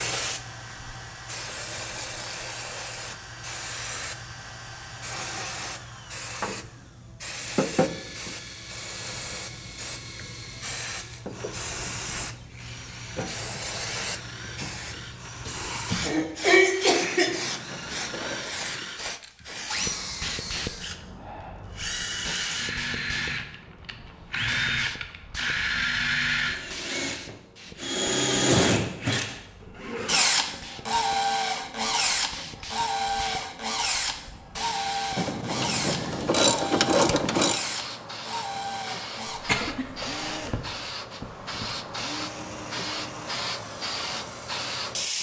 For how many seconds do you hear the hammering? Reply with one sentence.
The hammering can't be heard in this clip.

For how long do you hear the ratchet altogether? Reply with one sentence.
The ratchet can be heard for 4 seconds in total.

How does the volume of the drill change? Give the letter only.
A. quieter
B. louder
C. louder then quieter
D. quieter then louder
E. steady
C.